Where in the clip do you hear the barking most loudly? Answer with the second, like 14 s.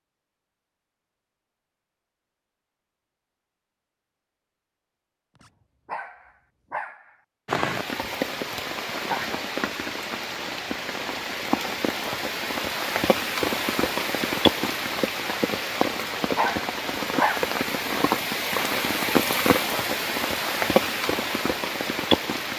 17 s.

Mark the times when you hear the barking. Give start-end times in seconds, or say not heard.
5.4-7.2, 15.8-17.5.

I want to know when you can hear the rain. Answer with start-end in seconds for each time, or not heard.
7.5-22.5.